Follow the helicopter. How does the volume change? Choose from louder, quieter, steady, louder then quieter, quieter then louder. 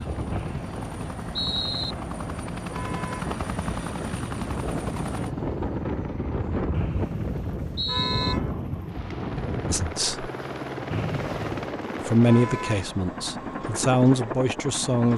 quieter then louder.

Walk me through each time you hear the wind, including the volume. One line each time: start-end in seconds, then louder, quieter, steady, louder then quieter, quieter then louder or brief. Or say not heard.
0.0-9.9 louder.